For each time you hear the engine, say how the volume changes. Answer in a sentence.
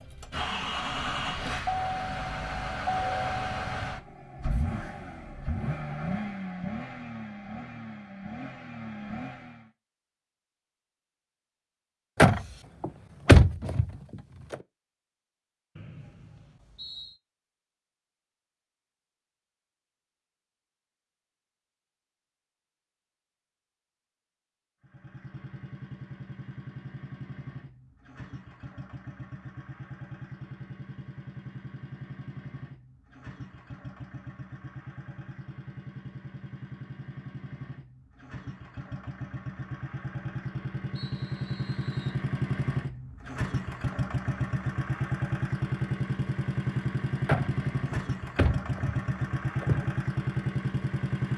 The engine can be heard from 0.0 to 9.7 s, getting quieter; and from 24.8 to 51.3 s, getting louder.